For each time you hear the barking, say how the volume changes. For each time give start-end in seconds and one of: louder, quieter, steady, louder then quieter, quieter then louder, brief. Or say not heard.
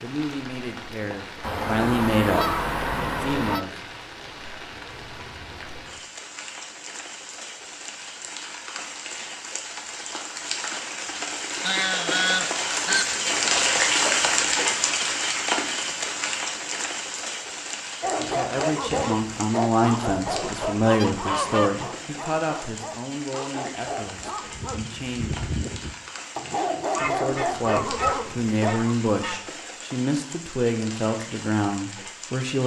18.0-28.8 quieter then louder.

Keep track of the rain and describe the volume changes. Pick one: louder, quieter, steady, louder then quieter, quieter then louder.
louder then quieter.